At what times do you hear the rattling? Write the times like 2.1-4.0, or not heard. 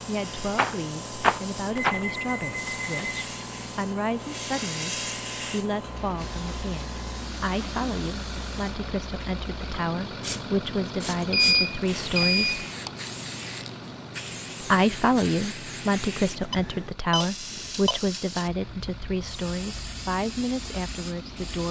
0.6-2.0.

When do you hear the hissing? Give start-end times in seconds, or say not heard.
0.0-21.6.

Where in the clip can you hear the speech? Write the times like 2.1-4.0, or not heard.
0.1-12.7, 14.6-21.6.